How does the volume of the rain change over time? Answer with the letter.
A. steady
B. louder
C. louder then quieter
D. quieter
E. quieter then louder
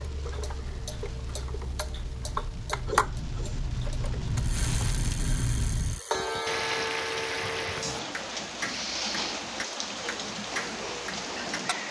B.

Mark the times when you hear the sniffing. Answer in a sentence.
The sniffing can be heard from 2.9 to 3.6 s and from 8.6 to 9.3 s.